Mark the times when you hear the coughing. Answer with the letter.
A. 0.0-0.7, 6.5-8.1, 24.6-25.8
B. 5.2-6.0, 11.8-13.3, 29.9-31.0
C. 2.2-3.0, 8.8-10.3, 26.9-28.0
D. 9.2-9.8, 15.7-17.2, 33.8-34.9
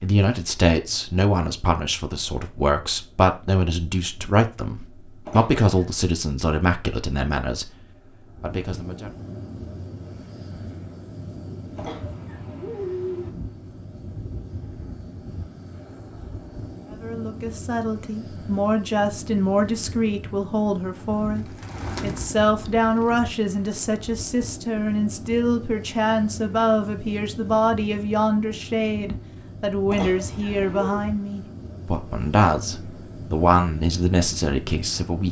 B.